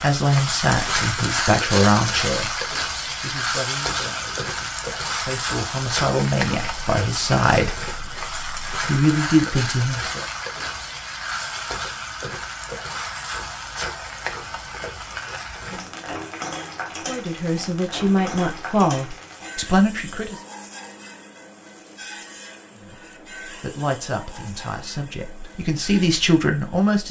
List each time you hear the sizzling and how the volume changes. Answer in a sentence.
You can hear the sizzling from 0.0 to 27.0 s, getting quieter.